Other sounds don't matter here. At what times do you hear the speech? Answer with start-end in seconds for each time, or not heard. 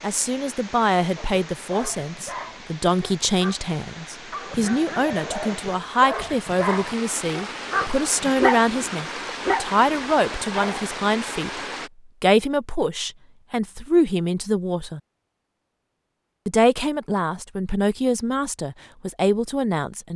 0.0-11.6, 12.2-15.0, 16.4-20.1.